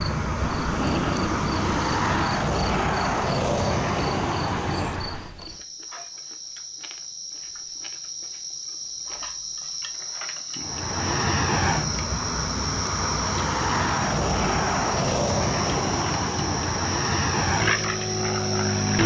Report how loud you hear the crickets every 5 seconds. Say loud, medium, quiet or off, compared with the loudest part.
loud, medium, loud, loud.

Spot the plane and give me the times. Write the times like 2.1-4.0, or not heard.
0.0-5.3, 10.6-19.0.